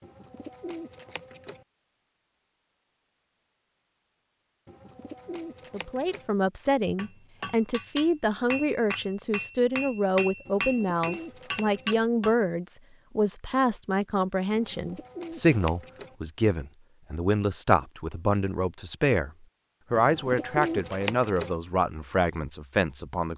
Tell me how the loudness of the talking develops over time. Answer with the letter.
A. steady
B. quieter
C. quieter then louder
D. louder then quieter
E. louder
A.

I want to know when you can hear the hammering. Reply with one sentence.
You can hear the hammering from 7.0 to 12.3 s.